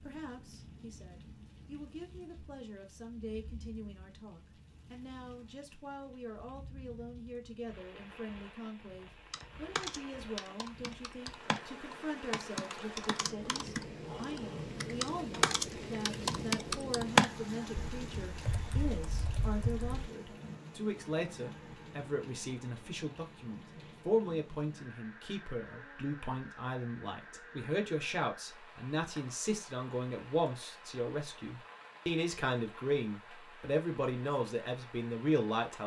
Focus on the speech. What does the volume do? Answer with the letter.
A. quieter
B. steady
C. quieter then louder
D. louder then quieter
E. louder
E.